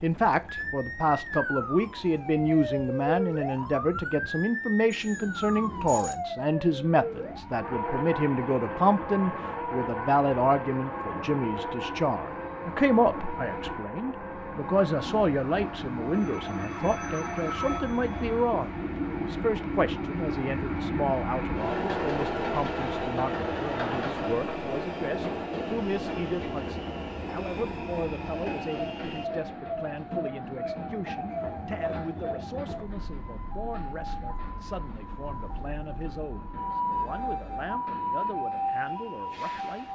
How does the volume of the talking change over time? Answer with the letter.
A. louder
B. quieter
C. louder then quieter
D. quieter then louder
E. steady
B.